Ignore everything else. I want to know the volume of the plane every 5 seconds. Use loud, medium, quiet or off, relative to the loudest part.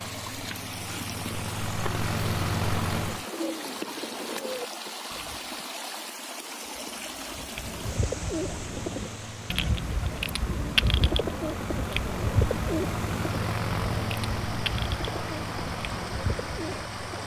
loud, medium, loud, medium.